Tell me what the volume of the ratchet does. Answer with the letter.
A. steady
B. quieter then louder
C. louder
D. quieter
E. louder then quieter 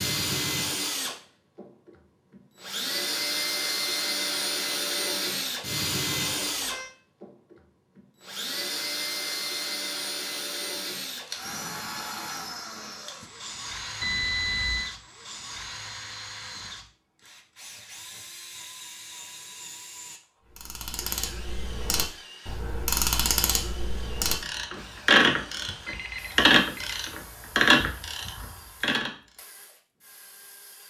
C.